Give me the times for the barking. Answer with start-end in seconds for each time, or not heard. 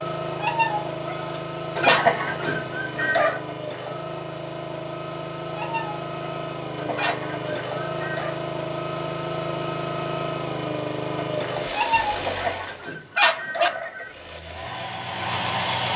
0.3-2.0, 5.5-7.2, 11.7-13.7.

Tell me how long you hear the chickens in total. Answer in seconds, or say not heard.
5 s.